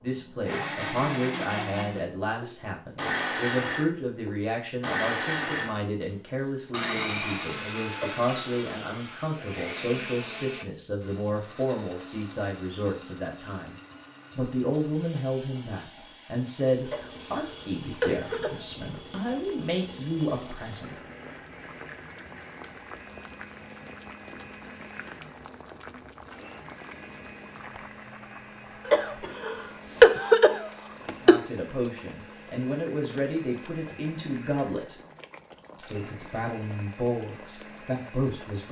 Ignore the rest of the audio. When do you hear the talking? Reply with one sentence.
You can hear the talking from 0.0 to 13.8 s, from 14.3 to 21.1 s, from 31.2 to 35.0 s and from 35.8 to 38.6 s.